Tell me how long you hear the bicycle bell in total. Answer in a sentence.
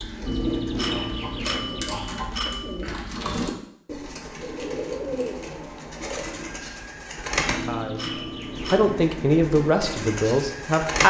You can hear the bicycle bell for 4 seconds altogether.